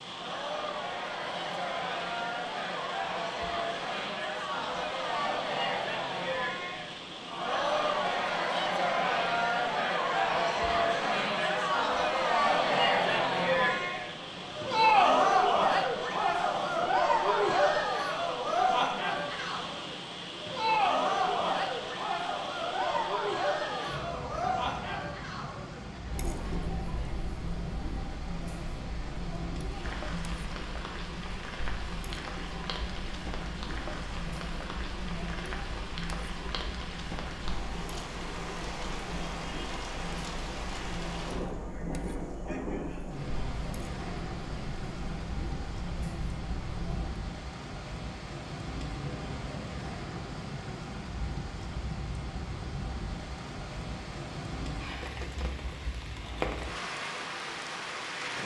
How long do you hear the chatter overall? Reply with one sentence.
The chatter can be heard for 47 seconds in total.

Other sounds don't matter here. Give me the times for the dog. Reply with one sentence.
You can't hear the dog here.